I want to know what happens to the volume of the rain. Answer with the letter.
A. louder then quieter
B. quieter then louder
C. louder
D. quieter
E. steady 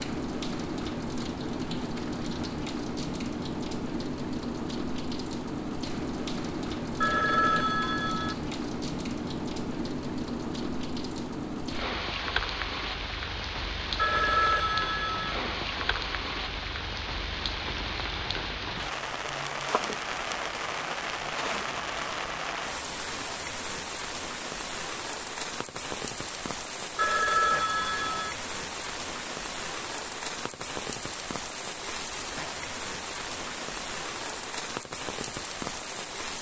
E.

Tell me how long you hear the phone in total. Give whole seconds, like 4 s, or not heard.
4 s.